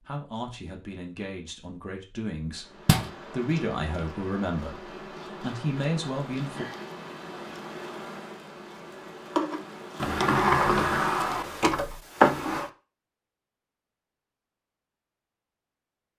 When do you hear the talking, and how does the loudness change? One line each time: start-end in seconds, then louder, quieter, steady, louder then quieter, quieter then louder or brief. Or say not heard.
0.0-6.7 louder.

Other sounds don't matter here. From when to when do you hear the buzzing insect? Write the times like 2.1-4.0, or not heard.
2.5-11.6.